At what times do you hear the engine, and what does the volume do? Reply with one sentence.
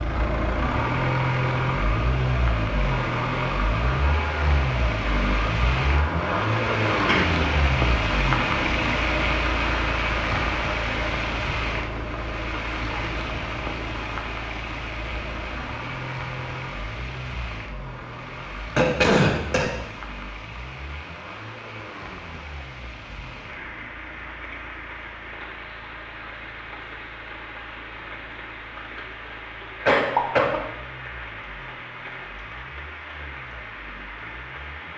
The engine can be heard from 0.0 to 34.9 s, getting quieter.